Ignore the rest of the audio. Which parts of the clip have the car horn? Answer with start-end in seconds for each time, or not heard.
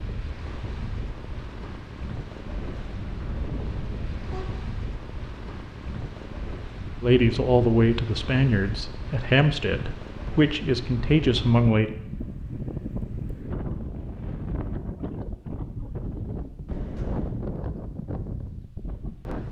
2.5-4.6, 16.6-17.4.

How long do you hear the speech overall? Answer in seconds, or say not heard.
5 s.